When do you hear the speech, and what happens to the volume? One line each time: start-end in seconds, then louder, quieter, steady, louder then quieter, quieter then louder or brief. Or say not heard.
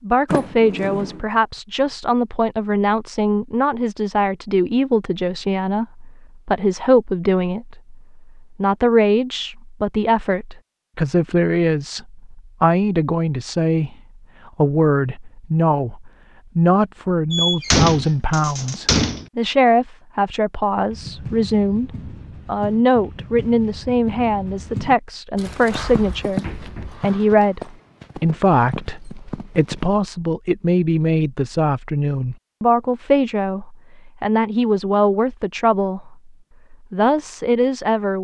0.0-38.1 steady.